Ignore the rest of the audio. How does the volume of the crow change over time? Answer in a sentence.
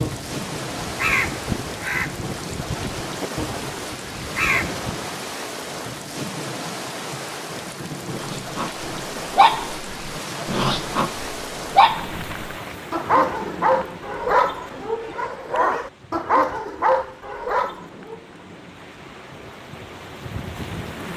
The loudness of the crow goes down, then up.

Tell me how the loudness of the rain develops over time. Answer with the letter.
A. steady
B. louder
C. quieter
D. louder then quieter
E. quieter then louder
C.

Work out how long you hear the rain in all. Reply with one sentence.
The rain can be heard for 21 seconds in total.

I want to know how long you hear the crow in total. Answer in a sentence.
You can hear the crow for 5 seconds altogether.